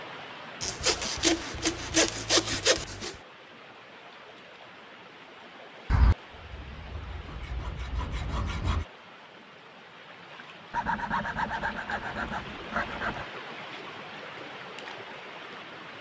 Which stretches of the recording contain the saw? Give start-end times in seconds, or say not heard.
0.6-3.1, 5.9-8.8, 10.7-13.2.